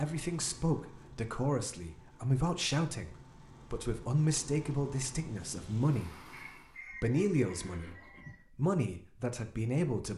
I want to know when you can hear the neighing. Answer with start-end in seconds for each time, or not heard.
7.5-8.2.